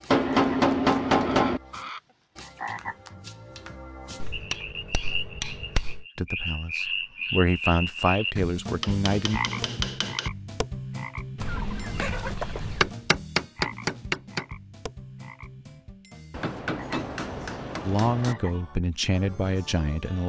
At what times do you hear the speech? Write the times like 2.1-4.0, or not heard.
6.2-9.4, 17.9-20.2.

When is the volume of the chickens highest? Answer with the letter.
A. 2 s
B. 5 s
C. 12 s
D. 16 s
C.